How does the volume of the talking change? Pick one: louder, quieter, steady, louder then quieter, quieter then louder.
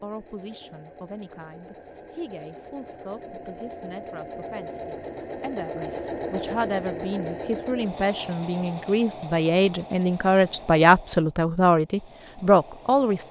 louder.